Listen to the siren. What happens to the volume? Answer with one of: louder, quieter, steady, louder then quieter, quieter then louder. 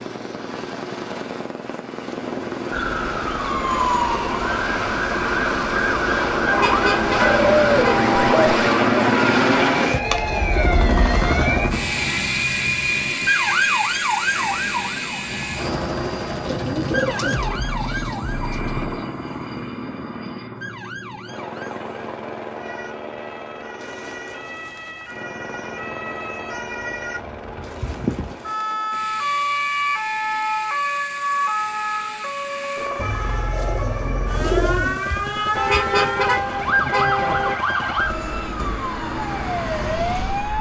quieter then louder.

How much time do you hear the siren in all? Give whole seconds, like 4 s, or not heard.
38 s.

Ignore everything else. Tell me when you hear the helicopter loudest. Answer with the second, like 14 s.
9 s.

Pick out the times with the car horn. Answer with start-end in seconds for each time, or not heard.
6.5-8.4, 35.5-37.5.